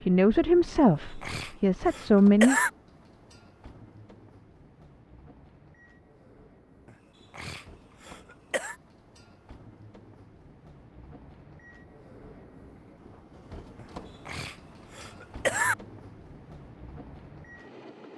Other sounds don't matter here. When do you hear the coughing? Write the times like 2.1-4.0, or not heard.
0.8-2.7, 6.8-8.8, 13.8-15.8.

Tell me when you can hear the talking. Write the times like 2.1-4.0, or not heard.
0.1-2.6.